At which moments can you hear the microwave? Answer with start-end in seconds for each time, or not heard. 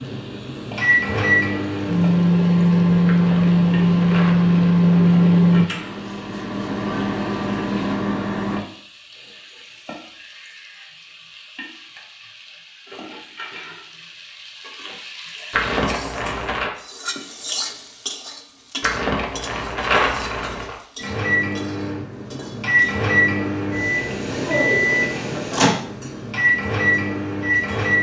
0.0-8.6, 20.9-27.9.